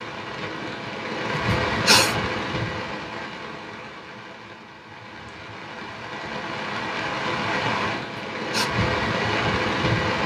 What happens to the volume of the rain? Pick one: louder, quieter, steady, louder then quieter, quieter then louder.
quieter then louder.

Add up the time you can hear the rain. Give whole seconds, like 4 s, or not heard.
10 s.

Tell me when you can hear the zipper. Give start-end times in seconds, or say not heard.
not heard.